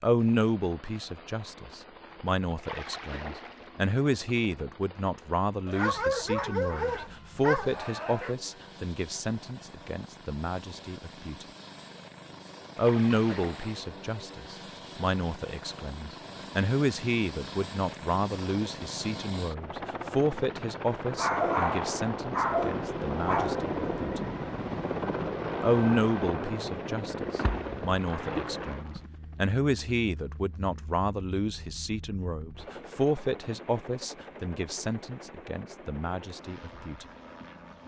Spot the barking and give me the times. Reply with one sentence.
You can hear the barking from 5.7 to 8.3 s and from 21.1 to 23.6 s.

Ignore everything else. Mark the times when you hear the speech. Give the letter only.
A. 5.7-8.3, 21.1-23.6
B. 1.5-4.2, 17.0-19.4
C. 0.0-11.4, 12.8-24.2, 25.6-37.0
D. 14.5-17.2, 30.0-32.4
C.